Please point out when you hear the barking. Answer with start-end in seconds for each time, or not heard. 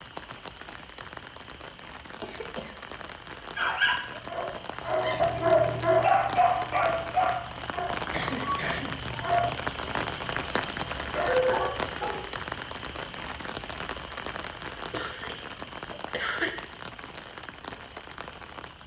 3.5-12.2.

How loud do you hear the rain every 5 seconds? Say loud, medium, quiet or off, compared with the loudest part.
medium, loud, loud, medium.